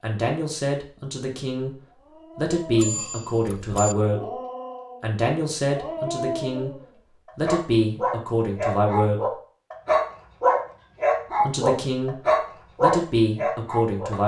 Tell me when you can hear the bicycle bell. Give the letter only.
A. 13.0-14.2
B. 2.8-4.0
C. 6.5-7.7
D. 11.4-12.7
B.